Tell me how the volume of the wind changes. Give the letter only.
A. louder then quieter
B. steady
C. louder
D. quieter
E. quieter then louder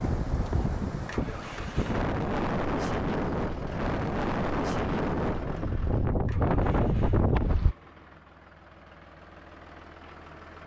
C.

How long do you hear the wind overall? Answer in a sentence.
You can hear the wind for 8 seconds altogether.